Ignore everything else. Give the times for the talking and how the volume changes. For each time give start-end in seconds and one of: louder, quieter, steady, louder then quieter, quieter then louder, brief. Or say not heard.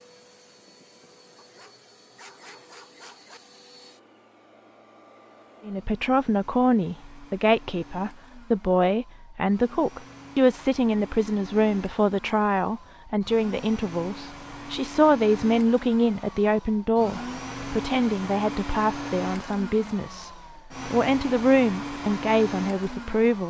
5.7-23.4 steady.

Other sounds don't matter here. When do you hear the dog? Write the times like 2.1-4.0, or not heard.
1.4-3.4.